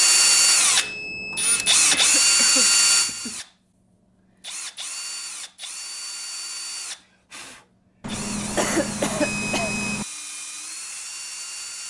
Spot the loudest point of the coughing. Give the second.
9 s.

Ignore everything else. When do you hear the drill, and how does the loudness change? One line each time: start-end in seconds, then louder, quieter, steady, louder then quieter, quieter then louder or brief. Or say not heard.
0.0-11.8 quieter.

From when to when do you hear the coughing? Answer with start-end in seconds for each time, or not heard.
1.9-3.4, 8.6-9.8.